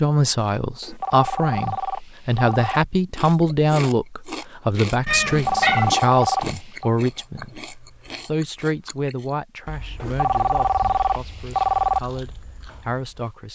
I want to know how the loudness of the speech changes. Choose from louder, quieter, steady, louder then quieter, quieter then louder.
quieter.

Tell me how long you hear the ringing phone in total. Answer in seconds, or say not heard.
6 s.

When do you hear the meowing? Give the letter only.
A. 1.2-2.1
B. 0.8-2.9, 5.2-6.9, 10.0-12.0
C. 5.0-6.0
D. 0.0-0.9
C.